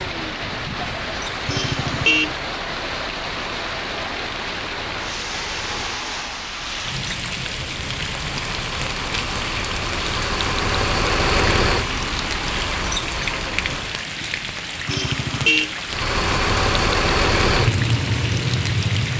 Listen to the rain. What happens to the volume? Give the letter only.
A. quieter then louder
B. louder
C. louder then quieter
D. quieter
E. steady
E.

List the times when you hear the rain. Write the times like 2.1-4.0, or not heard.
0.0-19.1.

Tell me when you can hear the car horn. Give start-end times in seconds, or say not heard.
1.4-2.4, 14.8-15.7.